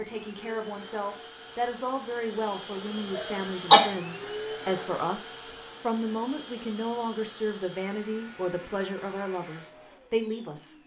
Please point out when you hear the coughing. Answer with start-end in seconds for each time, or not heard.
3.1-3.9.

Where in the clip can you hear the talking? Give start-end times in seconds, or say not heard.
0.0-10.8.